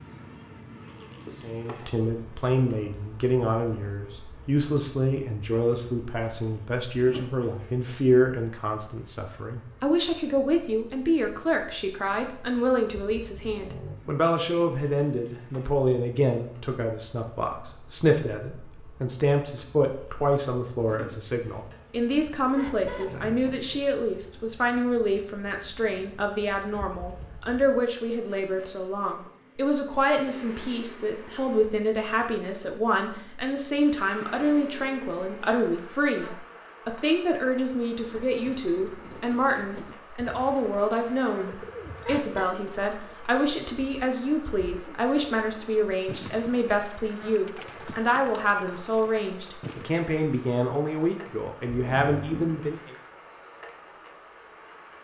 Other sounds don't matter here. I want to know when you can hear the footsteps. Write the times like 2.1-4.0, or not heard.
not heard.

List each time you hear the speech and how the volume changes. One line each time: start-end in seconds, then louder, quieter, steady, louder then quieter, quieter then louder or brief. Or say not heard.
1.4-53.0 steady.